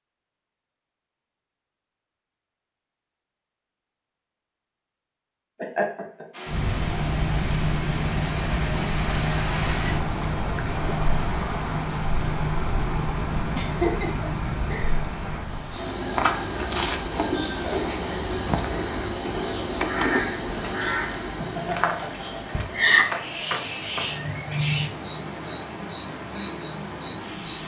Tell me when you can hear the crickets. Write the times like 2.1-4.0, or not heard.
6.5-27.6.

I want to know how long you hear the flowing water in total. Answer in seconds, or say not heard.
21 s.